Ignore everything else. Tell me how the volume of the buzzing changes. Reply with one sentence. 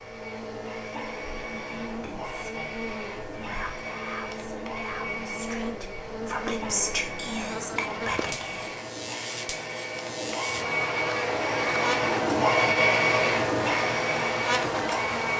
The loudness of the buzzing goes up.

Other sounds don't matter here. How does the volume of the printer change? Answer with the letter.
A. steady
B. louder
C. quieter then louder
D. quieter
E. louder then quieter
B.